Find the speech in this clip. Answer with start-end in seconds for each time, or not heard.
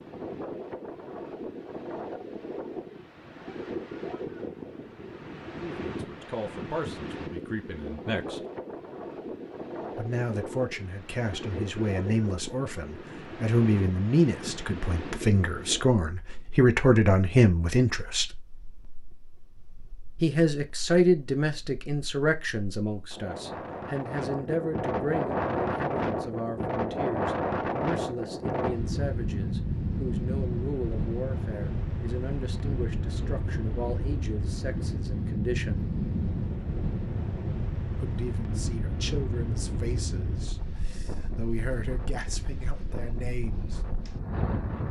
5.6-8.4, 9.9-18.3, 20.2-35.8, 38.0-43.8.